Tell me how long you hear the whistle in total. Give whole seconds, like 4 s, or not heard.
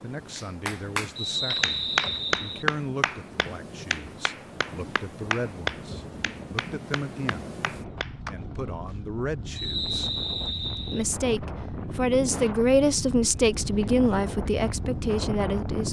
3 s.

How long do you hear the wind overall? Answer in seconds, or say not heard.
16 s.